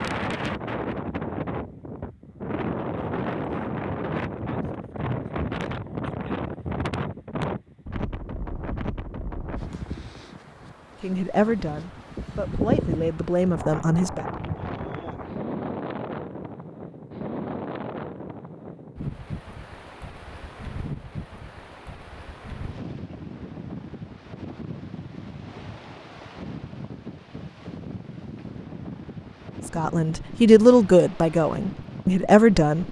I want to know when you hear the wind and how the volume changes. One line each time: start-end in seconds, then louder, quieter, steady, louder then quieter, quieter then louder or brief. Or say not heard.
0.0-32.8 quieter.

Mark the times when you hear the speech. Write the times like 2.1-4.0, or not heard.
11.0-14.2, 29.6-32.8.